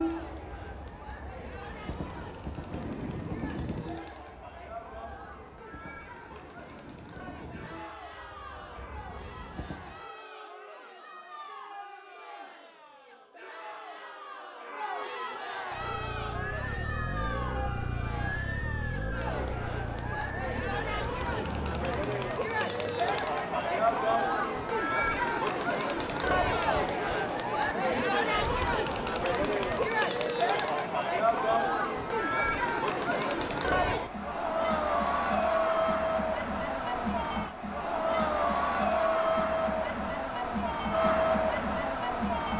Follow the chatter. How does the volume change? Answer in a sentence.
The volume of the chatter goes up.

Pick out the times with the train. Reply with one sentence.
You can hear the train from 0.0 to 10.1 s.